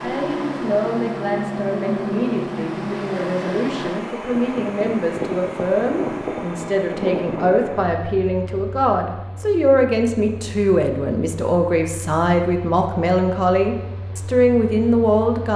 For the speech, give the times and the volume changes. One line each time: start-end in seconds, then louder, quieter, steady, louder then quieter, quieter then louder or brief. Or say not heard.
0.0-15.5 louder.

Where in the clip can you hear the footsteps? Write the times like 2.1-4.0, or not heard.
not heard.